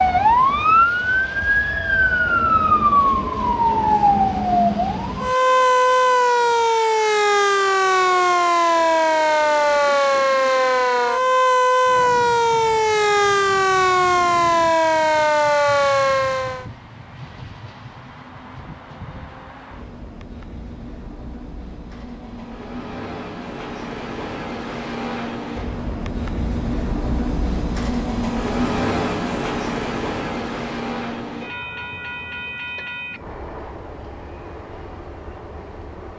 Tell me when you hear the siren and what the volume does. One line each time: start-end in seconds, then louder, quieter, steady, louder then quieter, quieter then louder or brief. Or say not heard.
0.0-16.6 steady.